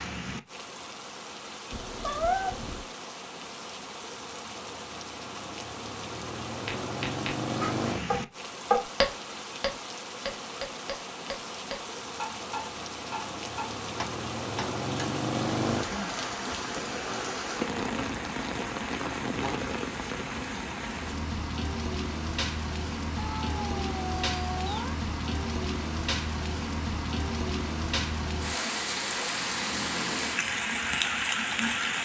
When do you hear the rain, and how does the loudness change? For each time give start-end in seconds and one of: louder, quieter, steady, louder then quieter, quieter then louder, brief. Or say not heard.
0.0-32.0 louder.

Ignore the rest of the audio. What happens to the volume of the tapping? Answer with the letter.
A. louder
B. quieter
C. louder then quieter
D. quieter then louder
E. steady
C.